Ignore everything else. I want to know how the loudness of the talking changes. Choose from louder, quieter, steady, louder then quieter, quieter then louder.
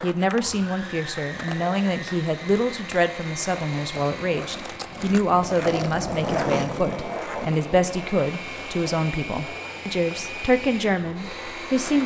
steady.